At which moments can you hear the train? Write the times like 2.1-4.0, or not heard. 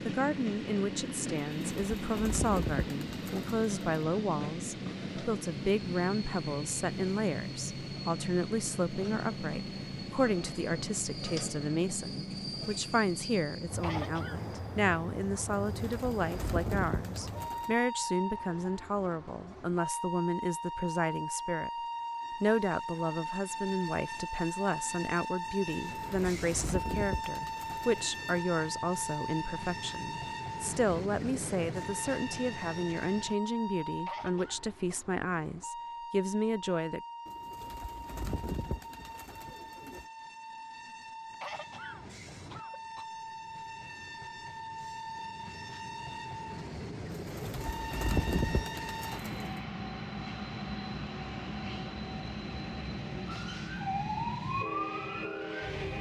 0.0-55.9.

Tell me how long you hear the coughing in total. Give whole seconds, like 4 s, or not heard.
3 s.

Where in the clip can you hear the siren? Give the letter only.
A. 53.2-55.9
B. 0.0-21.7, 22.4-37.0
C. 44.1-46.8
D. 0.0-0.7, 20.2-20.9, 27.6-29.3
A.